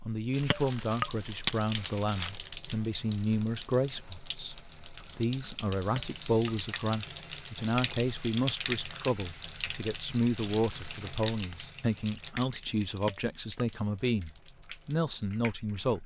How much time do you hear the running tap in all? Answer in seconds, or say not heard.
16 s.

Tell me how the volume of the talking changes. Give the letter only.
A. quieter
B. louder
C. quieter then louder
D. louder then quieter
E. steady
E.